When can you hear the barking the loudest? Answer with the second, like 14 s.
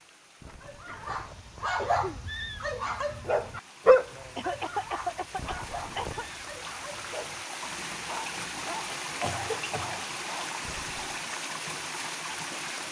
4 s.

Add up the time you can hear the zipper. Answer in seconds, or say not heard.
3 s.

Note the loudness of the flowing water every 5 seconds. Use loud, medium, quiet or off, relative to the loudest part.
quiet, loud, loud.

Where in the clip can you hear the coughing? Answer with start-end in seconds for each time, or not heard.
0.8-2.2, 4.3-6.2, 9.2-10.0.